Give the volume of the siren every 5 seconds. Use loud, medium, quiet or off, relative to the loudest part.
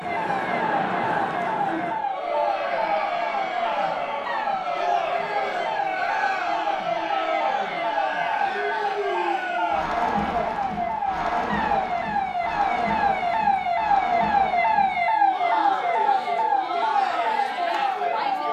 medium, medium, loud, loud.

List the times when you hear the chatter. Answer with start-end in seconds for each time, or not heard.
0.0-18.4.